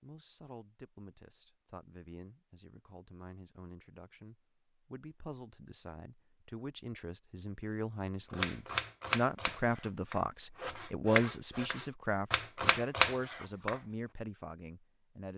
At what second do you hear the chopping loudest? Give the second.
13 s.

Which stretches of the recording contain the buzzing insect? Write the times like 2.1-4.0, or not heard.
not heard.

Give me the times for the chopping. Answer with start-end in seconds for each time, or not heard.
8.3-13.8.